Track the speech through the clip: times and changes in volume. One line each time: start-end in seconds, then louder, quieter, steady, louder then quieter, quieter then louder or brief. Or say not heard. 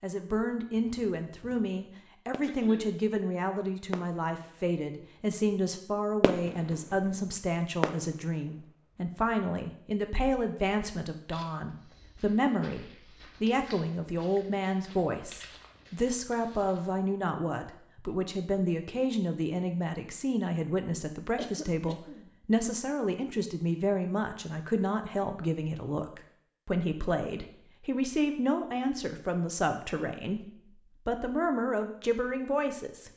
0.0-33.1 steady.